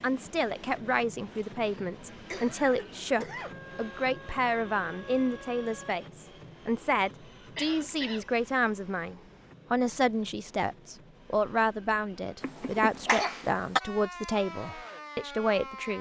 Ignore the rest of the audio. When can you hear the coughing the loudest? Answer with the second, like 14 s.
13 s.